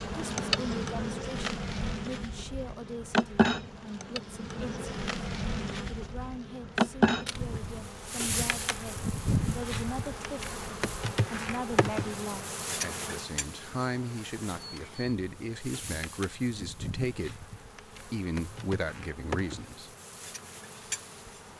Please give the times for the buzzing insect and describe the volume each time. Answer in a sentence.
The buzzing insect can be heard from 0.0 to 21.5 s, getting quieter.